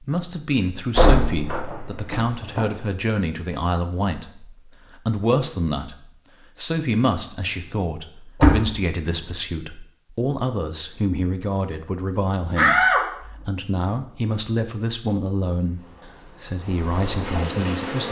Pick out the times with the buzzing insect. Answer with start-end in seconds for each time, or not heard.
15.7-18.0.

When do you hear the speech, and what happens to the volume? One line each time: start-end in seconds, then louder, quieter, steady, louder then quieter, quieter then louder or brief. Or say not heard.
0.0-15.8 steady
16.4-18.0 brief.